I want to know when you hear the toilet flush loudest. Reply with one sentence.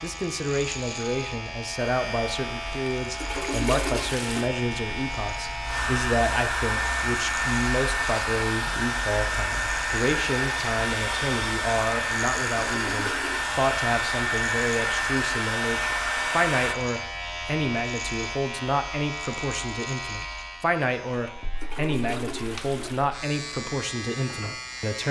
The loudest moment of the toilet flush is at 4 seconds.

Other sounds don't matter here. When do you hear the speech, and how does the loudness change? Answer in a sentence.
You can hear the speech from 0.0 to 25.0 s, at a steady volume.